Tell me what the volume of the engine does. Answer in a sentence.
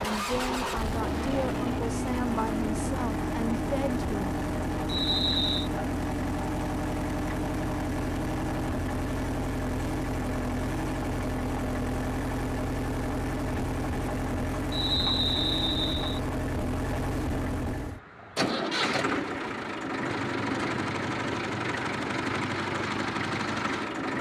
The volume of the engine stays about the same.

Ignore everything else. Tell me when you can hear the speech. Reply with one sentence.
You can hear the speech from 0.0 to 4.3 s.